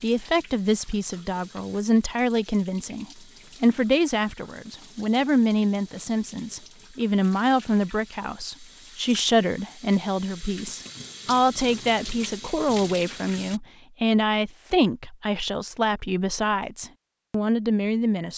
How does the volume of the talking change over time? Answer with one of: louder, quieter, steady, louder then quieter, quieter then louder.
steady.